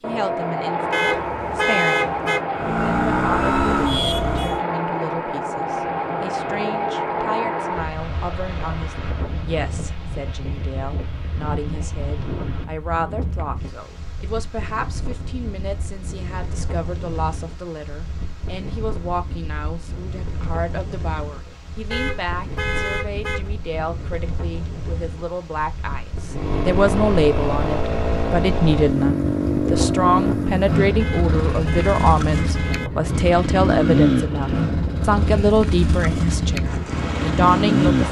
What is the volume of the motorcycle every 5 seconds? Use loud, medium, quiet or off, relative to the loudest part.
loud, off, off, off, off, loud, loud, loud.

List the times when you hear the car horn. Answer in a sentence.
You can hear the car horn from 0.9 to 2.5 s, from 21.9 to 23.5 s and from 30.9 to 32.9 s.